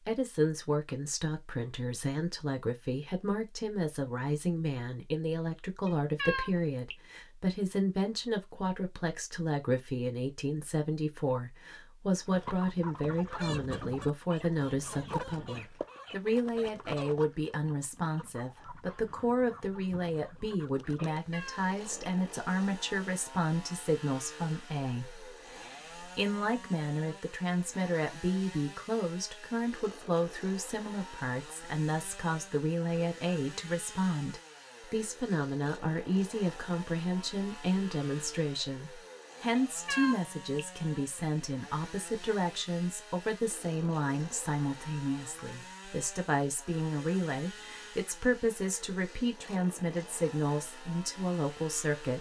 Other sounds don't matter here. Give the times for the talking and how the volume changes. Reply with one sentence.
You can hear the talking from 0.1 to 52.1 s, at a steady volume.